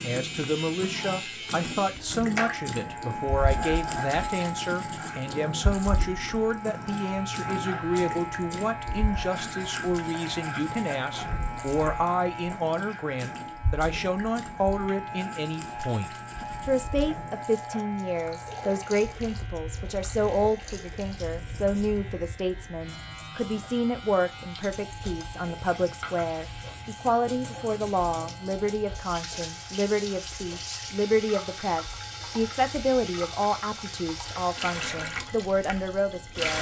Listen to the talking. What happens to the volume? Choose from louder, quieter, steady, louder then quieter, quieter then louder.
steady.